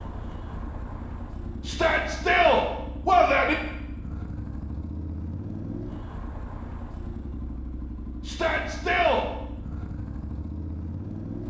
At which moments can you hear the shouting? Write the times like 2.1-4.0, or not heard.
1.6-3.5, 8.2-9.2.